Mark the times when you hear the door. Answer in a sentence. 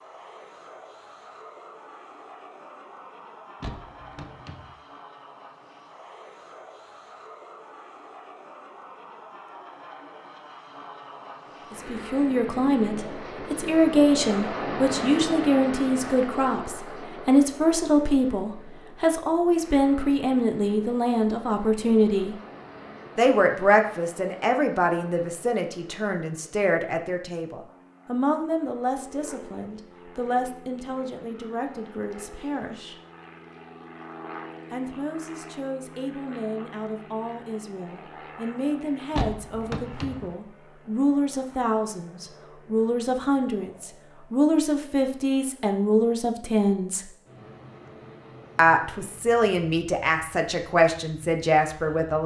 The door can be heard from 3.6 to 4.8 s and from 39.1 to 40.4 s.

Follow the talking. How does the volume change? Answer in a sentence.
The loudness of the talking goes down, then up.